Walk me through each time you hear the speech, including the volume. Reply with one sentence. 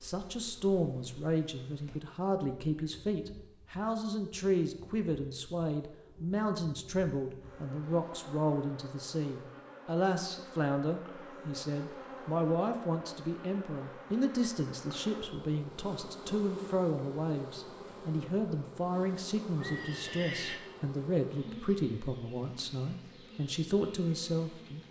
You can hear the speech from 0.0 to 24.8 s, at a steady volume.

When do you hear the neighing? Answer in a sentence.
The neighing can be heard from 19.6 to 20.6 s.